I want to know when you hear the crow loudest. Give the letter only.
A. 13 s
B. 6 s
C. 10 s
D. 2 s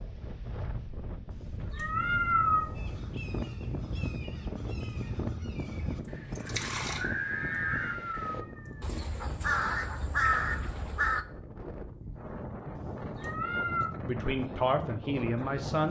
C.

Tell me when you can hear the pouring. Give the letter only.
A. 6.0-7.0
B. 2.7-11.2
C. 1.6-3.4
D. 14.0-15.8
A.